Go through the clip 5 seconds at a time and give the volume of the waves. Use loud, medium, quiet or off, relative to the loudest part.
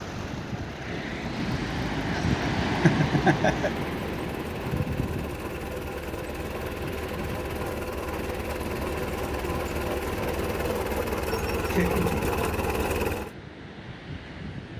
loud, medium, medium.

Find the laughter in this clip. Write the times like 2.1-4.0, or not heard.
2.1-3.7, 11.2-12.1.